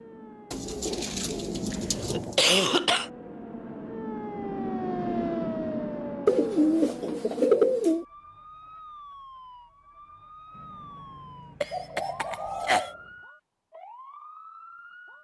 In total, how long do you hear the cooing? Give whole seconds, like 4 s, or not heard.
6 s.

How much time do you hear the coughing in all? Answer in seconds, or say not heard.
3 s.